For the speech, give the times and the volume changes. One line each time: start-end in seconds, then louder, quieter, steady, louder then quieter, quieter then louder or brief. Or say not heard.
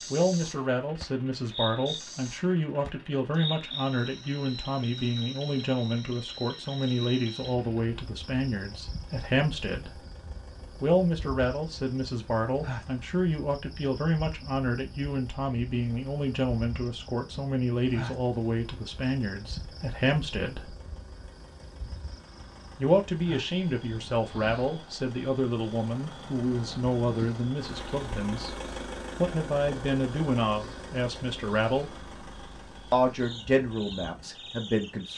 0.1-10.1 steady
10.7-20.8 steady
22.8-31.9 steady
32.9-35.1 brief.